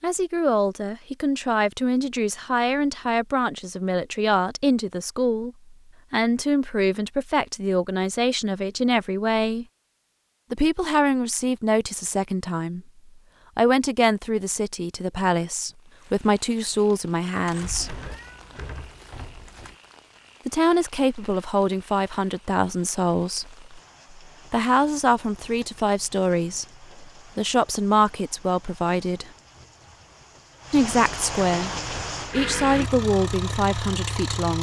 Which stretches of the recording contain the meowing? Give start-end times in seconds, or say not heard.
17.4-19.8.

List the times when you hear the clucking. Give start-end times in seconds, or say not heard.
not heard.